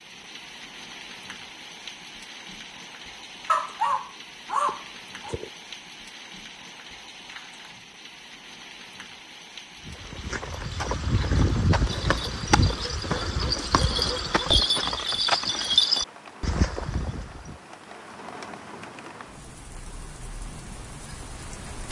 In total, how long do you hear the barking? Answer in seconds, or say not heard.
2 s.